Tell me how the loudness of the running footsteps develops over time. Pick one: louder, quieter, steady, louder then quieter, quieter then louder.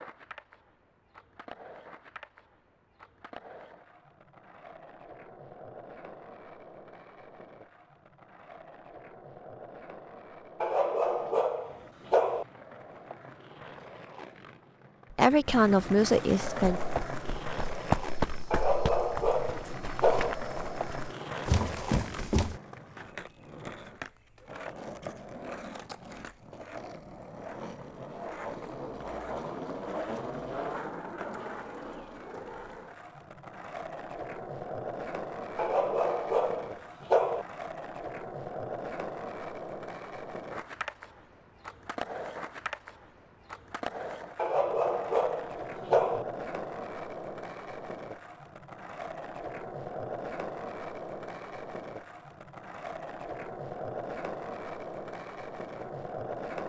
quieter then louder.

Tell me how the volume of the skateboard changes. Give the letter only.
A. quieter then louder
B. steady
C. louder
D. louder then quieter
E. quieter
C.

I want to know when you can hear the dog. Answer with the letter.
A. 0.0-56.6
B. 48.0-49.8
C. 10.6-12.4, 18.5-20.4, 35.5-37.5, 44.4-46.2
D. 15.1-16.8
C.